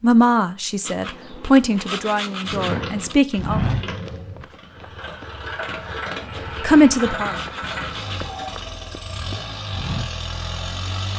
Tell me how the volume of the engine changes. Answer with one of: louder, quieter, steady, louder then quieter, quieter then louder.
steady.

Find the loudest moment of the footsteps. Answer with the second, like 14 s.
4 s.